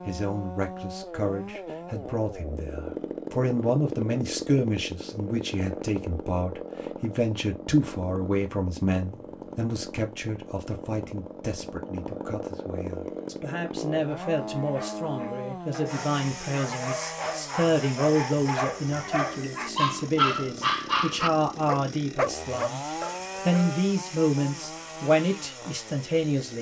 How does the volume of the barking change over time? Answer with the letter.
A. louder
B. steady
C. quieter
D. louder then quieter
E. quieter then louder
A.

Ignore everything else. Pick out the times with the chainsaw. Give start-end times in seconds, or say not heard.
0.0-26.5.